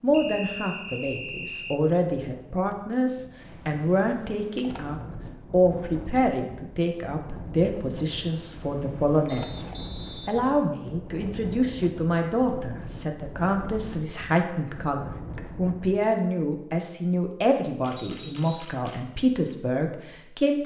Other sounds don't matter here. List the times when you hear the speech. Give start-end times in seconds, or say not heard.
0.0-20.6.